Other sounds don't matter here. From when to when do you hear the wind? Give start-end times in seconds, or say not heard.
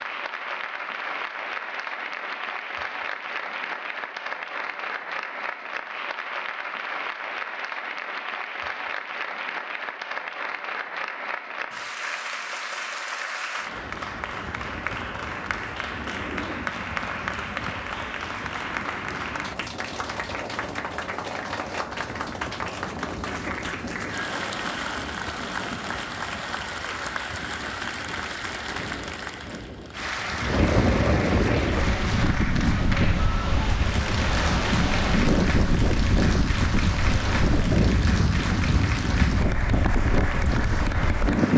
13.6-41.5.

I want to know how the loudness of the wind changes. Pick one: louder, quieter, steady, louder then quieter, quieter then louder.
louder.